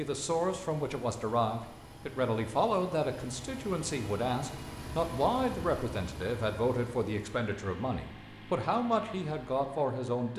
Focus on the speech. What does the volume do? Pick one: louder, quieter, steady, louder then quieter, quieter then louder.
steady.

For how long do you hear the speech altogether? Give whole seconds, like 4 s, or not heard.
10 s.